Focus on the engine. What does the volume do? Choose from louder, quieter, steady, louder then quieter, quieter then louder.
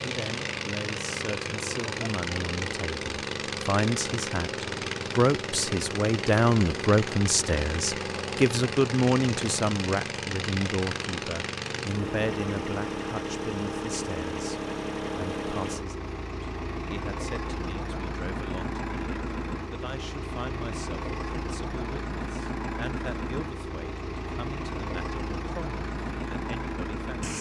steady.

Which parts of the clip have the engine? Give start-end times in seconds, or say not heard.
0.0-27.3.